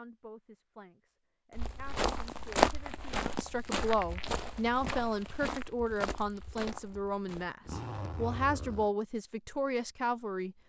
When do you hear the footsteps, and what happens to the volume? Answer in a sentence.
You can hear the footsteps from 1.6 to 7.5 s, getting quieter.